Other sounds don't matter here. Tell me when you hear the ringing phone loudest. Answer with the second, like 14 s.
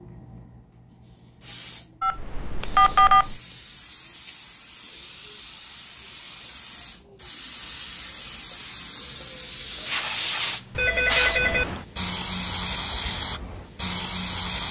3 s.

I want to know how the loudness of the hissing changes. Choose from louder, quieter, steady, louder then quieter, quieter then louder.
louder.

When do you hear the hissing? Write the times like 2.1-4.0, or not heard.
0.0-14.6.